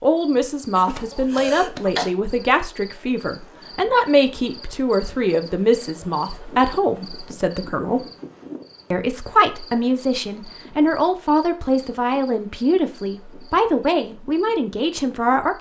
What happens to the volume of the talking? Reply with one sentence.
The volume of the talking stays about the same.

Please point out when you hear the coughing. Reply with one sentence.
The coughing can be heard from 0.8 to 2.1 s.